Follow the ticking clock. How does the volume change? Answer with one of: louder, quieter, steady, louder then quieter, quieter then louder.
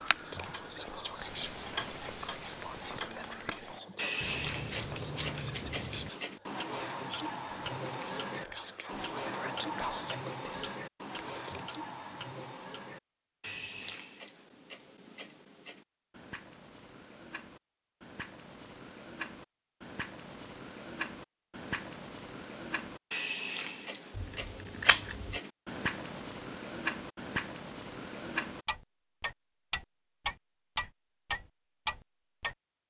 quieter then louder.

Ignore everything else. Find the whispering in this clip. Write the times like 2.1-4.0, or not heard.
0.2-11.8.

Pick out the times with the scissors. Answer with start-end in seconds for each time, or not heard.
4.2-6.1, 13.4-14.0, 24.1-25.4.